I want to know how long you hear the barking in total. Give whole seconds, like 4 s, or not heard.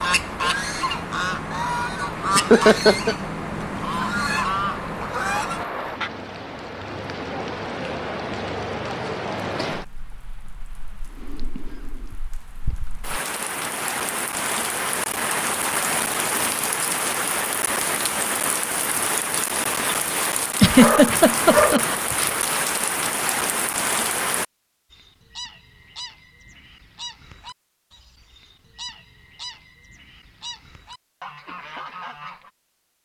2 s.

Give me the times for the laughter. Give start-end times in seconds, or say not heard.
2.4-3.1, 20.6-21.9.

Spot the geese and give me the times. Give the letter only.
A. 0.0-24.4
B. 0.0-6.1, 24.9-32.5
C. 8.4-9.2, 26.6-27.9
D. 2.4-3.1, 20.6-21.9
B.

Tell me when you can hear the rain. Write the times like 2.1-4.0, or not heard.
0.0-24.4.